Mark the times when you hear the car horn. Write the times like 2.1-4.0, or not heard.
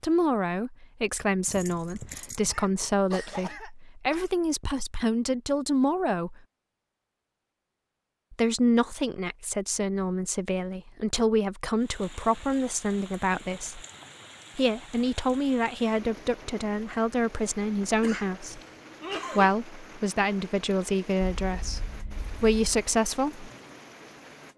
not heard.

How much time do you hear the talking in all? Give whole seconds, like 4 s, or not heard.
20 s.